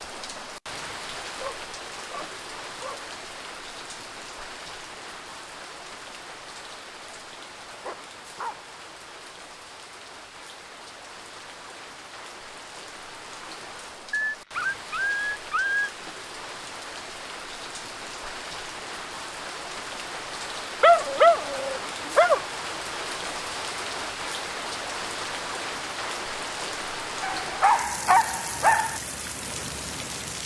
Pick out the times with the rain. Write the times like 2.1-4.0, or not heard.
0.0-30.4.